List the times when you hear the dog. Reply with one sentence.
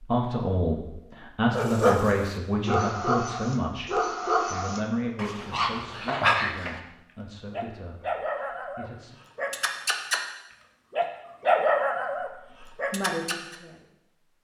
The dog can be heard from 1.5 to 6.8 s, from 7.5 to 10.2 s and from 10.9 to 13.6 s.